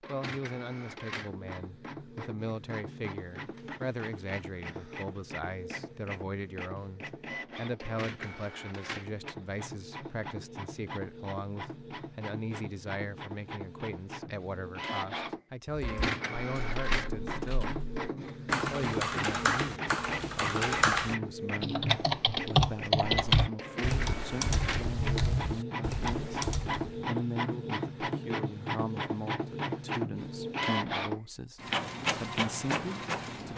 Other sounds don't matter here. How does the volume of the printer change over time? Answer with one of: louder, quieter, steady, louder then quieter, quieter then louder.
louder.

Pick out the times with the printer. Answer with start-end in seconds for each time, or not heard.
0.0-33.5.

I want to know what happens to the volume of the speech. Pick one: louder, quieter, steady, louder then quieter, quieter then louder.
steady.